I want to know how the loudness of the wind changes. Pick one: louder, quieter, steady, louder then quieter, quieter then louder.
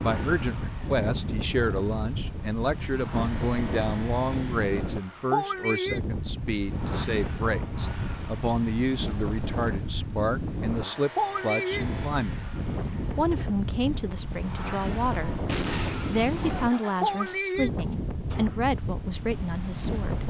steady.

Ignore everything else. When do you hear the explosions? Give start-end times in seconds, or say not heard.
15.4-16.6.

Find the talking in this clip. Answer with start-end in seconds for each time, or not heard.
0.0-12.4, 13.2-15.4, 16.1-20.2.